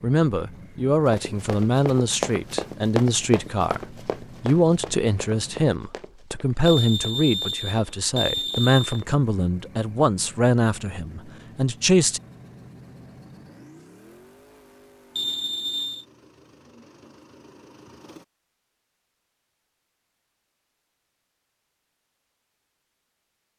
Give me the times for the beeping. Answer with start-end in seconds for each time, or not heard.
6.7-9.1, 15.2-16.1.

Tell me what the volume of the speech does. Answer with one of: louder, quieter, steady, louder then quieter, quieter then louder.
steady.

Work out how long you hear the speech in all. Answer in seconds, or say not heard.
12 s.